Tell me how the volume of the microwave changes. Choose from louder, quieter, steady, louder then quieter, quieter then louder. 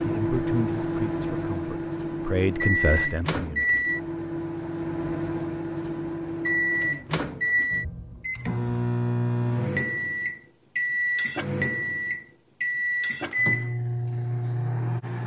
steady.